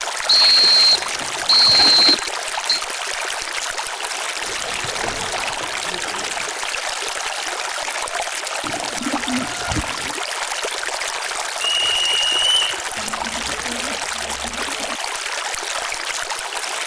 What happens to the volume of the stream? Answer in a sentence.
The volume of the stream stays about the same.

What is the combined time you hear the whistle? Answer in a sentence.
You can hear the whistle for 4 seconds altogether.